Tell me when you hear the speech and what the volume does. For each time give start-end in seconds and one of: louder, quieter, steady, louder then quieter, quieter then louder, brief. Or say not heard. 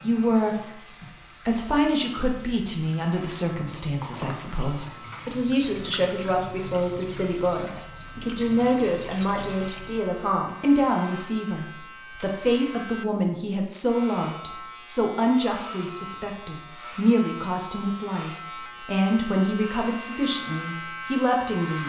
0.0-0.8 brief
1.4-21.8 steady.